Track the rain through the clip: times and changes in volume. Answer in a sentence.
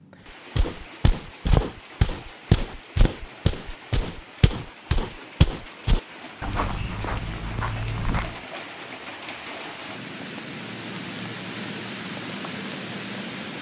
The rain can be heard from 0.0 to 13.5 s, getting louder.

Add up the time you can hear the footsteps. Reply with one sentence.
The footsteps can be heard for 8 seconds in total.